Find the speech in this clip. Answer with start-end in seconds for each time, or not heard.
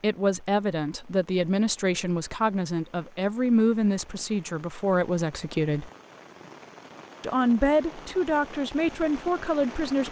0.0-5.9, 7.2-10.0.